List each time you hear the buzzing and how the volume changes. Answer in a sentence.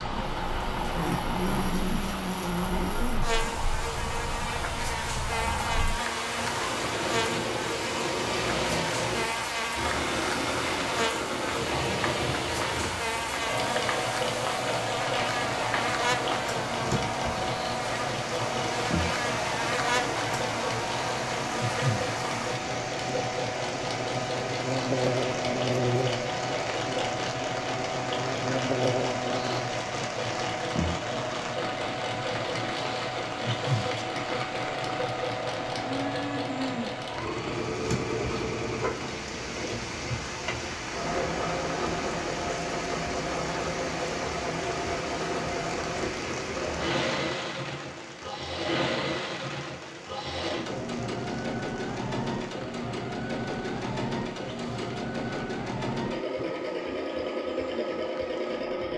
The buzzing can be heard from 0.1 to 29.8 s, at a steady volume.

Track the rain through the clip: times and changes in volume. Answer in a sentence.
You can hear the rain from 0.0 to 58.9 s, getting quieter.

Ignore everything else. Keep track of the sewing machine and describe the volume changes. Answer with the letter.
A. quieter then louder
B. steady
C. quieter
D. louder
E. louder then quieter
B.